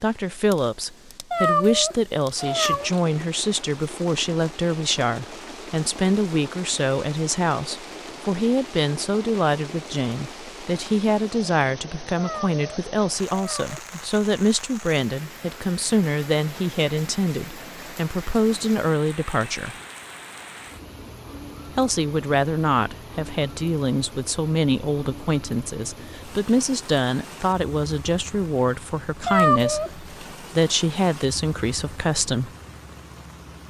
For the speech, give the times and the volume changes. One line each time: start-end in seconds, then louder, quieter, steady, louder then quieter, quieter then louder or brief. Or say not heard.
0.0-19.8 steady
21.8-32.5 steady.